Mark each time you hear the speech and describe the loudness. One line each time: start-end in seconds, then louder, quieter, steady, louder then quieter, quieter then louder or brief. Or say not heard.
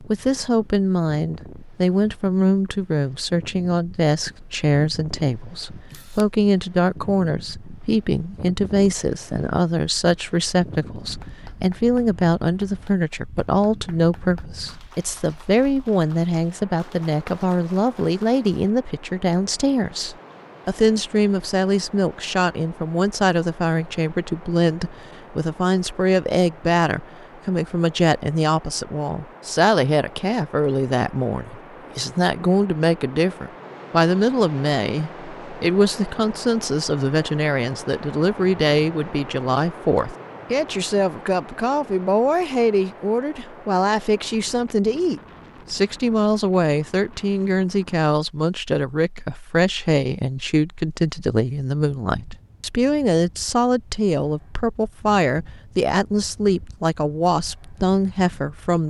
0.0-58.8 steady.